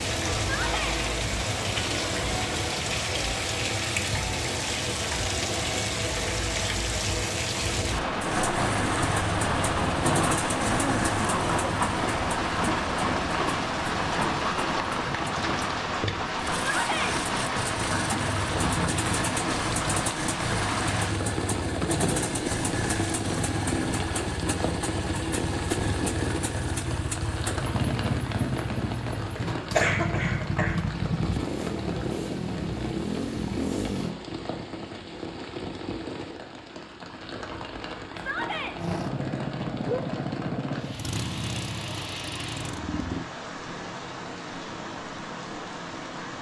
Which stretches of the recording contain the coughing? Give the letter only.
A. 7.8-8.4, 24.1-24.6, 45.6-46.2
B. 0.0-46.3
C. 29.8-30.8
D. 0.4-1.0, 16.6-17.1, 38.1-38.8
C.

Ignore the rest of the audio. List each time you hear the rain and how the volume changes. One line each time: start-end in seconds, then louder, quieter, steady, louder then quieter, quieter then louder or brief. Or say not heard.
0.0-46.3 quieter.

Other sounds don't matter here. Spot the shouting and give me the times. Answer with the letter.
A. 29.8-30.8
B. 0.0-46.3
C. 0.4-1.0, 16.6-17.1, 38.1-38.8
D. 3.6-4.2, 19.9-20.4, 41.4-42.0
C.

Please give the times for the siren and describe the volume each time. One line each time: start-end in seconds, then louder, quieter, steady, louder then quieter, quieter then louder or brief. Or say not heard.
not heard.